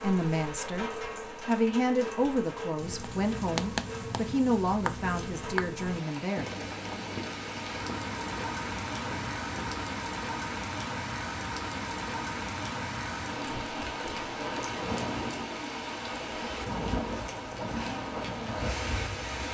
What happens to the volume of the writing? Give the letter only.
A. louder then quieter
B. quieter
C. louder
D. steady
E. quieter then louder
B.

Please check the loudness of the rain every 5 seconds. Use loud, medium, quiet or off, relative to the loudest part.
medium, loud, loud, loud.